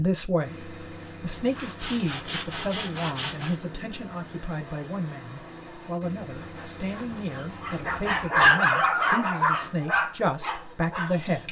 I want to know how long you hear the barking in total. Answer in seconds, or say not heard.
4 s.